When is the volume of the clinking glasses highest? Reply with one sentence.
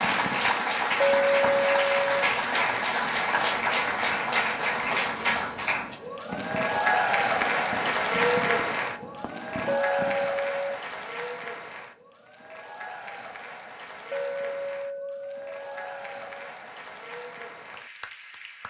The loudest moment of the clinking glasses is at 1 second.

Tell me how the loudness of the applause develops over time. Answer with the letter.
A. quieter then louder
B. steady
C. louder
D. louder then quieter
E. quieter
E.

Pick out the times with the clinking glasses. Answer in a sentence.
You can hear the clinking glasses from 1.0 to 2.3 s, from 9.7 to 10.8 s and from 14.1 to 16.5 s.